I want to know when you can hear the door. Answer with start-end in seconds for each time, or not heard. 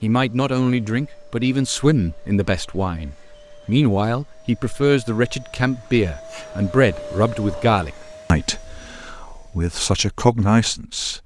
not heard.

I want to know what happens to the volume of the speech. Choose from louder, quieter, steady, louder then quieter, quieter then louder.
steady.